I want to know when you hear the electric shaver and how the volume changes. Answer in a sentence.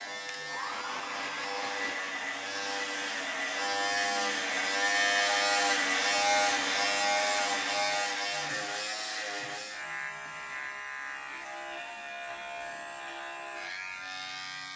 The electric shaver can be heard from 0.0 to 14.7 s, getting louder then quieter.